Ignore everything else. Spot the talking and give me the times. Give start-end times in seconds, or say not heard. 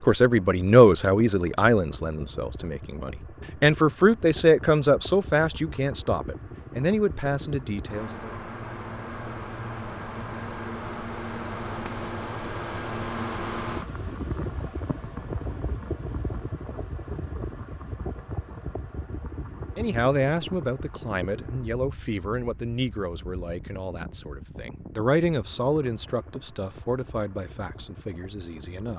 0.1-8.3, 19.8-28.9.